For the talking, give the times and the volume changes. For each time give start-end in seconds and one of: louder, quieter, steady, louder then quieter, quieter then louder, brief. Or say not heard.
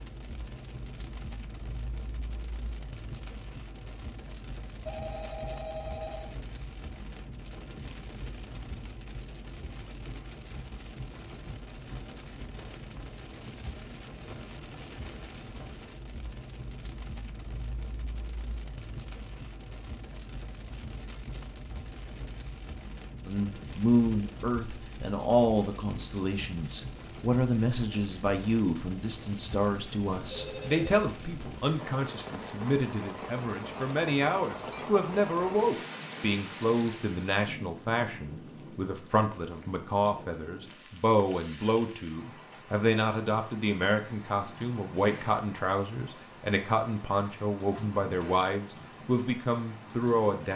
23.2-50.5 steady.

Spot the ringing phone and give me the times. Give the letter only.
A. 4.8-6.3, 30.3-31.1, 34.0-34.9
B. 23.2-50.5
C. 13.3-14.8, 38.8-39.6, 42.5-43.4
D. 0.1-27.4
A.